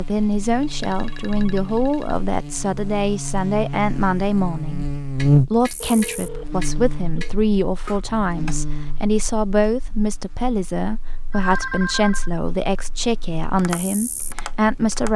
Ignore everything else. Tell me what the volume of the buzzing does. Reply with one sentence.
The volume of the buzzing goes up, then down.